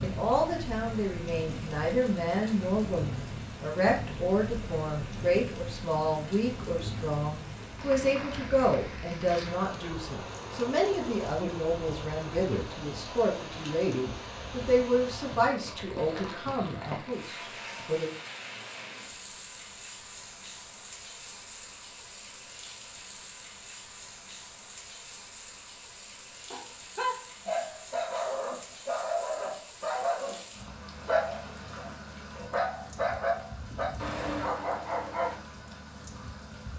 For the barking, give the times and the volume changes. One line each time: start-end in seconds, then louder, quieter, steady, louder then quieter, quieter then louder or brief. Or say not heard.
26.5-35.4 steady.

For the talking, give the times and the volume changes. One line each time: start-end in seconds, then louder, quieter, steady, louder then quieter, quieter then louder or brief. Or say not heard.
0.0-18.1 steady.